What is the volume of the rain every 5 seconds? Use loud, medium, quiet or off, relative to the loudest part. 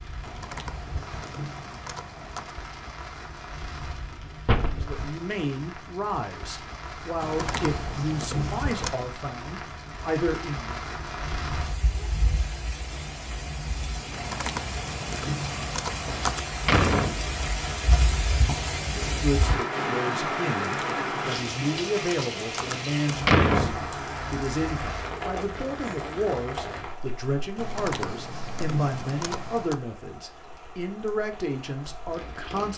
medium, medium, medium, loud, loud, medium, quiet.